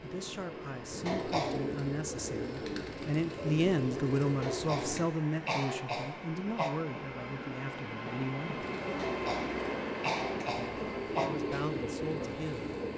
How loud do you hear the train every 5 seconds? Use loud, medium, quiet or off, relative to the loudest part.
medium, loud, loud.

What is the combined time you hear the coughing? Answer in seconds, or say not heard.
5 s.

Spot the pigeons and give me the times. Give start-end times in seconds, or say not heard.
0.0-5.0, 8.6-12.9.